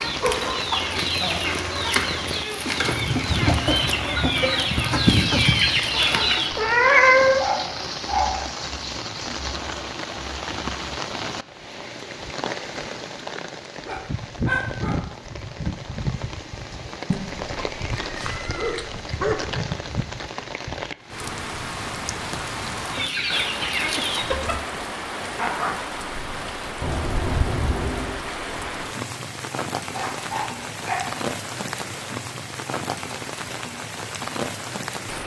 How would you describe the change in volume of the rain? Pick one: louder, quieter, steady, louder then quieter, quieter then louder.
steady.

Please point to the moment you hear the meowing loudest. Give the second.
7 s.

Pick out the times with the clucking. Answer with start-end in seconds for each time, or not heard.
0.0-6.5, 22.9-24.6.